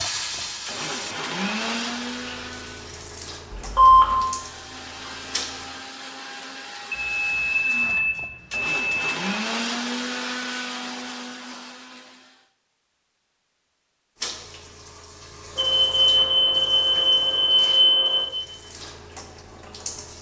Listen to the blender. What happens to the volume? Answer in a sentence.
The loudness of the blender goes down, then up.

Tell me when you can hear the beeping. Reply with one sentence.
You can hear the beeping from 3.5 to 4.1 s, from 6.9 to 9.2 s and from 15.6 to 18.2 s.